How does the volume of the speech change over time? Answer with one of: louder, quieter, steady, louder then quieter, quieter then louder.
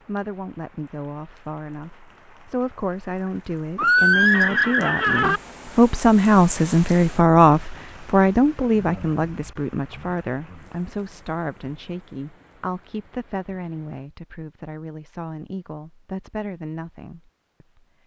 louder then quieter.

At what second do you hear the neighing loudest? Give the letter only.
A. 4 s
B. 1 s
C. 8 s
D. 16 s
A.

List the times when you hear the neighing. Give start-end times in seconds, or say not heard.
3.8-5.4.